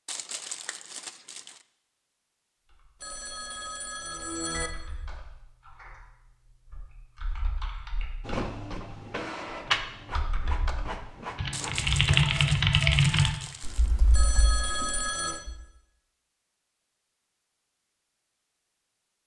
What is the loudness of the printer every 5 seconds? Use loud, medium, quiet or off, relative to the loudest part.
off, loud, medium, off.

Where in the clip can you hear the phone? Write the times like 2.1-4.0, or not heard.
3.0-4.7, 14.1-15.4.